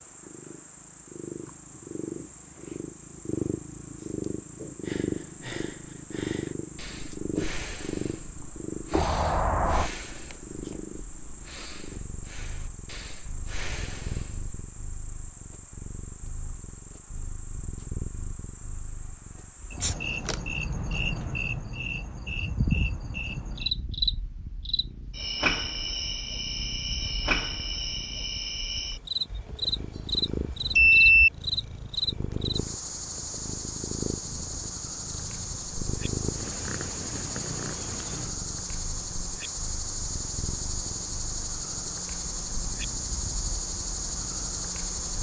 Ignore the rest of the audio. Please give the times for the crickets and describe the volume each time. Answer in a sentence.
The crickets can be heard from 0.0 to 45.1 s, getting louder.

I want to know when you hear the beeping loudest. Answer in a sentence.
The loudest moment of the beeping is at 31 seconds.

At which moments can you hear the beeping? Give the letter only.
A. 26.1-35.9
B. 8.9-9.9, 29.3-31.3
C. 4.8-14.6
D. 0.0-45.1
B.